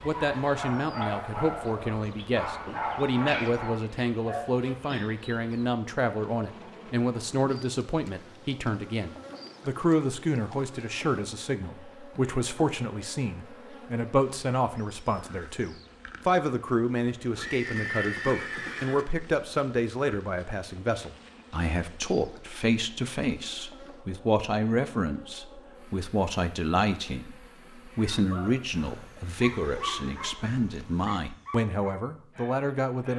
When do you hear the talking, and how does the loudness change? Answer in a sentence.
You can hear the talking from 0.0 to 33.1 s, at a steady volume.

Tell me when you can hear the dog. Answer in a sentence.
You can hear the dog from 0.0 to 5.2 s and from 27.9 to 33.1 s.